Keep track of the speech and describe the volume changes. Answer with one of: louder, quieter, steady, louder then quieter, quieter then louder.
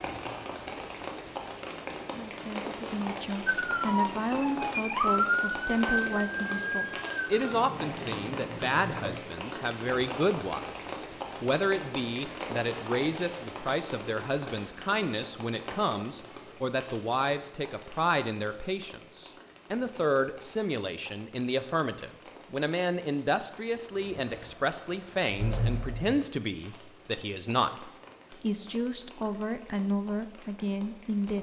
steady.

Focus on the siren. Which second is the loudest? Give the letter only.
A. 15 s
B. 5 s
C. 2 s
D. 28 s
B.